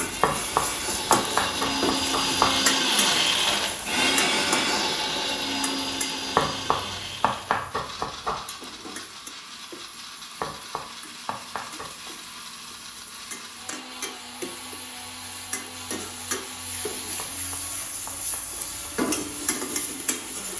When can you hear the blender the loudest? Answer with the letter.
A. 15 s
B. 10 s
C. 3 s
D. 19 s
C.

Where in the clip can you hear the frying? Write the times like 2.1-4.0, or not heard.
0.0-20.5.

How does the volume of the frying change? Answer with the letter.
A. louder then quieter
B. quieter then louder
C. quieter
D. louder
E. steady
B.